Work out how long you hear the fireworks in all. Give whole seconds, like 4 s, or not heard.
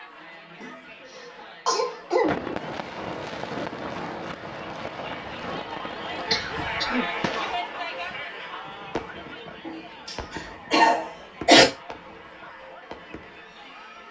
11 s.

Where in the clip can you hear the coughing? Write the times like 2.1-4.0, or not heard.
0.6-2.5, 6.3-7.0, 9.7-11.7.